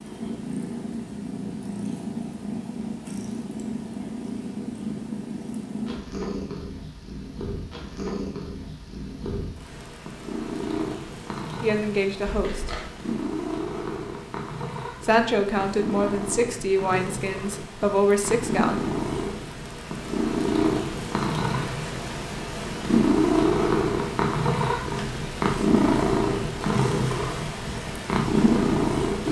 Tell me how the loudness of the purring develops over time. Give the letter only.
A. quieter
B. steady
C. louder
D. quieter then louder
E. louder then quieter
C.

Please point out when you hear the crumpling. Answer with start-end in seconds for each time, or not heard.
12.2-12.9.